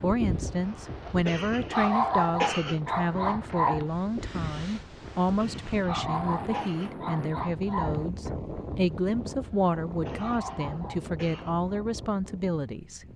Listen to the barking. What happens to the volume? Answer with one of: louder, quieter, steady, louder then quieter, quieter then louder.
quieter.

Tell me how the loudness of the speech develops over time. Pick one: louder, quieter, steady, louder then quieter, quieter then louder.
steady.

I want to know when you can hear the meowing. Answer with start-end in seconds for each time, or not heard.
not heard.